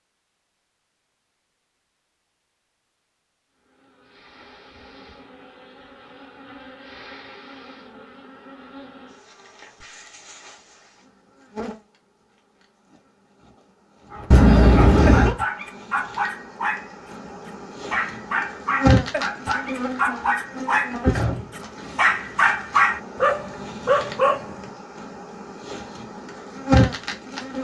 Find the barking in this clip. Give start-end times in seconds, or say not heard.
14.1-24.7.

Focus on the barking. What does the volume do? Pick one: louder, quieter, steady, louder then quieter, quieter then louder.
louder.